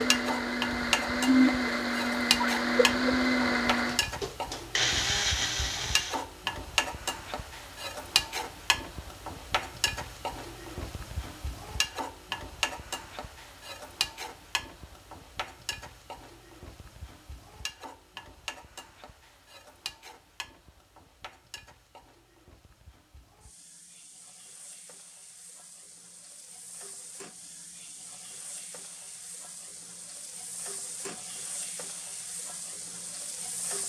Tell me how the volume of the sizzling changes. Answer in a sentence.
The loudness of the sizzling goes down, then up.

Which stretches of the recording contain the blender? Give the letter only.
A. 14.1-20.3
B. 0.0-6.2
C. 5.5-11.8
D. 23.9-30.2
B.